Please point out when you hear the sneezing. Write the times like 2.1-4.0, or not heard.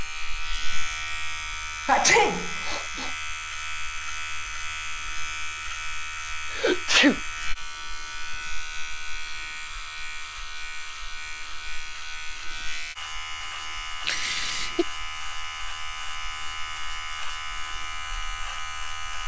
1.9-3.1, 6.5-7.2, 14.1-14.8.